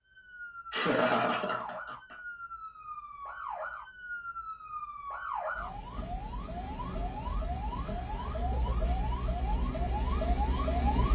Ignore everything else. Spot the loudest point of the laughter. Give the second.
1 s.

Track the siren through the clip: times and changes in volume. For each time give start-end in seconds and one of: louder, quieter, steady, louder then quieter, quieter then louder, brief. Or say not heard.
0.0-11.1 louder.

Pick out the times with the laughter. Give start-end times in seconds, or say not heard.
0.7-2.1, 7.8-8.9.